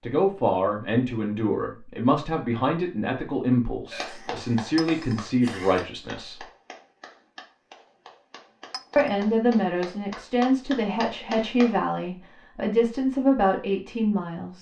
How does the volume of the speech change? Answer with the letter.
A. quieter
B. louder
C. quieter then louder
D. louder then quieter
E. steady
E.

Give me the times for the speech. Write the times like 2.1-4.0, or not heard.
0.0-6.5, 8.9-14.5.